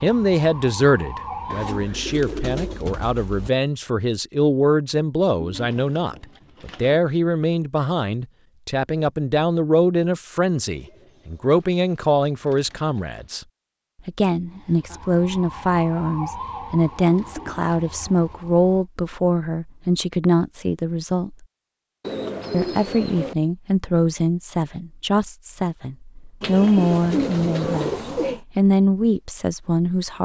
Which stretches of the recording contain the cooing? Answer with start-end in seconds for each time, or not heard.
1.5-3.5, 5.4-7.0, 10.7-13.4, 16.8-18.6, 22.0-23.4, 26.4-28.4.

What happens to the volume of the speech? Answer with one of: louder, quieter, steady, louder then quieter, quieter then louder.
steady.